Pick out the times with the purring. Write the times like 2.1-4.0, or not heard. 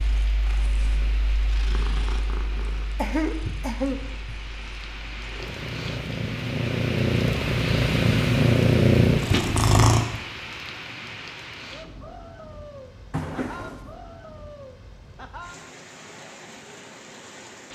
0.0-10.1.